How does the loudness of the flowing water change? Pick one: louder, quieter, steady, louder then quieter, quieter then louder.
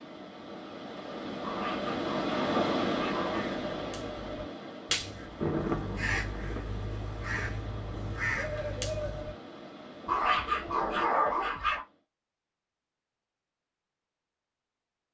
quieter.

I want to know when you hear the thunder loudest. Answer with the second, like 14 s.
6 s.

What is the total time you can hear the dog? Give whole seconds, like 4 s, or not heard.
4 s.